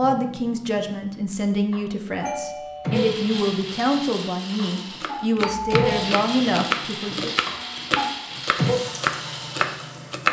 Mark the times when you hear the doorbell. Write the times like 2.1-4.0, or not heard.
2.1-3.0, 5.4-6.0.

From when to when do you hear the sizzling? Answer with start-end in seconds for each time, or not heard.
0.0-10.2.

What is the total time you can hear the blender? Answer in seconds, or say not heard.
7 s.